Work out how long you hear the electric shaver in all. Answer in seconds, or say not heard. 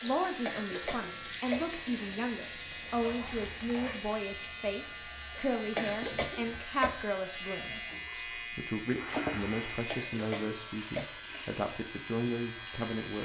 13 s.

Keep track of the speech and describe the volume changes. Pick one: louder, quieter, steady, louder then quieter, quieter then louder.
steady.